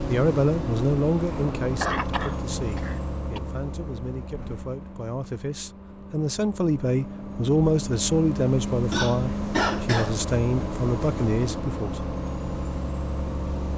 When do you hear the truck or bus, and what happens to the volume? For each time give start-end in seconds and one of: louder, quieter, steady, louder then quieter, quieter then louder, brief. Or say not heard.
0.0-13.7 quieter then louder.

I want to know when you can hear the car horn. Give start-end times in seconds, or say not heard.
not heard.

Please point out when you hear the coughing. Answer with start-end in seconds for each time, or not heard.
1.8-3.4, 8.9-10.2.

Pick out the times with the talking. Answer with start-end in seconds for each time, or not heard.
0.1-12.1.